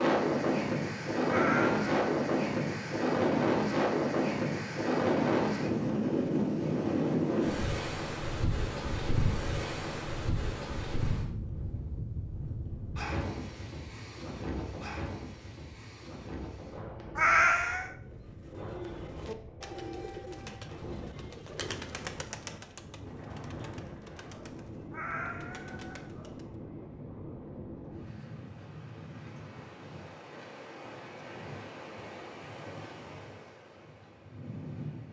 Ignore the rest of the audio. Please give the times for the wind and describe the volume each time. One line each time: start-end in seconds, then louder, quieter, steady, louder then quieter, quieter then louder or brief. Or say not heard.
0.0-35.0 quieter.